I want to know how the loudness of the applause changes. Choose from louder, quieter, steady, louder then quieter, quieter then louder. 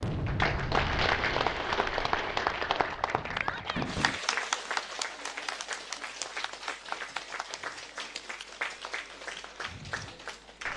quieter.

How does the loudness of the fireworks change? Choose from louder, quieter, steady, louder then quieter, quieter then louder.
quieter.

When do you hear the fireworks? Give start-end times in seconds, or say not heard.
0.0-4.2.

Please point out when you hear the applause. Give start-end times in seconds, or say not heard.
0.1-10.7.